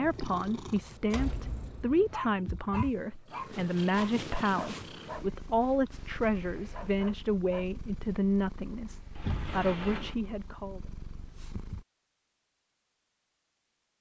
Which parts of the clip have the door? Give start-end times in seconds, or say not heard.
1.1-2.1, 9.2-10.2.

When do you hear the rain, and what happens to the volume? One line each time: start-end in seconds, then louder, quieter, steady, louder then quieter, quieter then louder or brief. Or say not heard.
not heard.